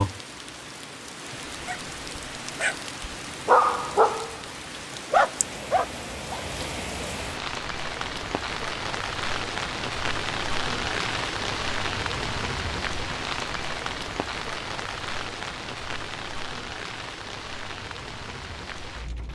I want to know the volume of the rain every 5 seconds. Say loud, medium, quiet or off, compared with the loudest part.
medium, loud, loud, medium.